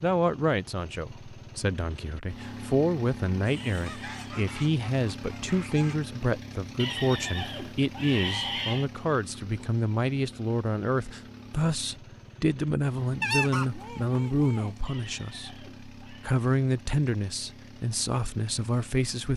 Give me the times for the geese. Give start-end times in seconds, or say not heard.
3.6-6.3, 13.2-14.8.